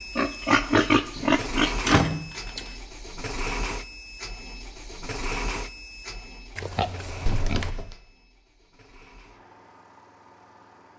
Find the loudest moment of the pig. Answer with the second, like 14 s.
1 s.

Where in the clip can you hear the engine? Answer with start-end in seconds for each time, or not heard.
0.0-10.9.